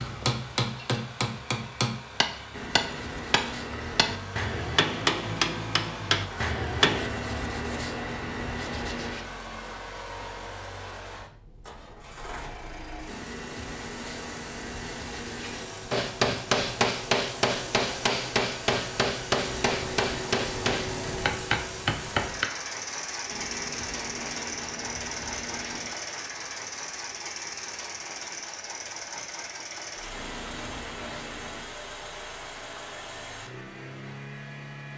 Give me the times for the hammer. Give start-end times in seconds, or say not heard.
0.0-7.1, 15.9-22.4.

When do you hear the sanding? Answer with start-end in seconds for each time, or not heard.
2.5-4.2, 6.8-9.3, 13.1-15.8, 19.4-21.2, 23.2-26.0, 30.1-31.8.